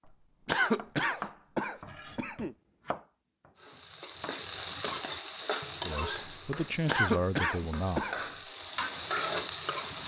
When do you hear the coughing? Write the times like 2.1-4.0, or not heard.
0.5-2.5, 6.8-8.2.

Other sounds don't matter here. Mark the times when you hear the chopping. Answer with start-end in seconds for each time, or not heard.
0.0-5.4.